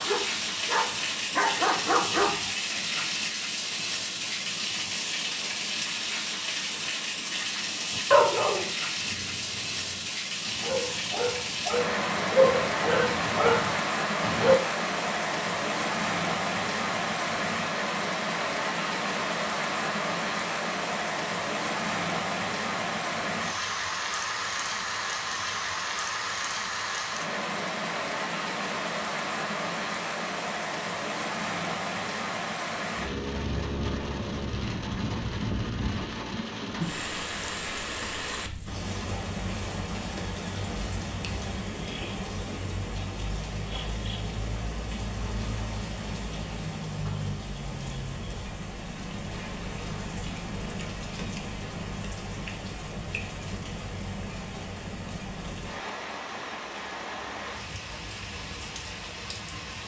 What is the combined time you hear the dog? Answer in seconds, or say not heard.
9 s.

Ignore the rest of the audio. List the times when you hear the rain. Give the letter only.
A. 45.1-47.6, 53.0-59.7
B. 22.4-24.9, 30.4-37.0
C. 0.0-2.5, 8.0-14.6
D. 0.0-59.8
D.